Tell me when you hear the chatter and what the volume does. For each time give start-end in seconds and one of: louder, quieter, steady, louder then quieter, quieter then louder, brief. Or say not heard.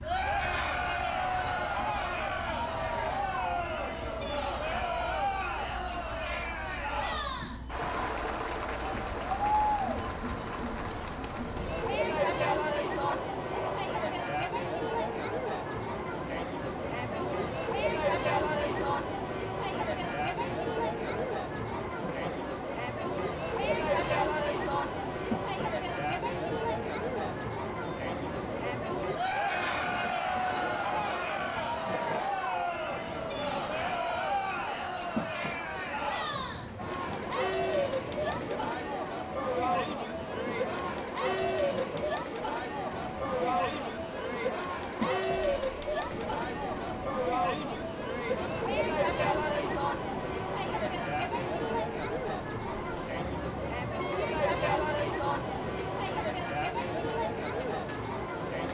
0.0-58.6 steady.